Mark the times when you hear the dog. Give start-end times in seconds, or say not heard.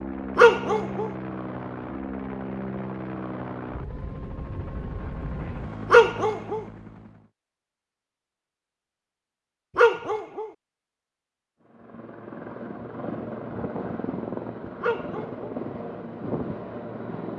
0.3-1.1, 5.9-6.6, 9.8-10.5, 14.8-15.3.